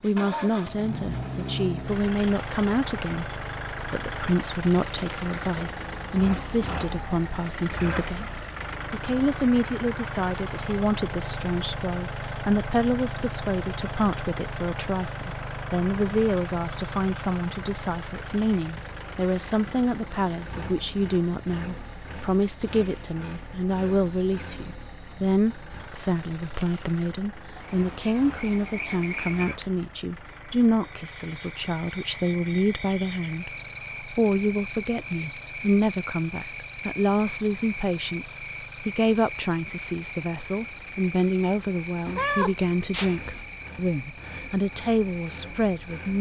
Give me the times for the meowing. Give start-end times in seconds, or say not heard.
42.0-43.5.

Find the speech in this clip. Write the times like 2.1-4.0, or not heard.
0.0-3.2, 3.9-46.1.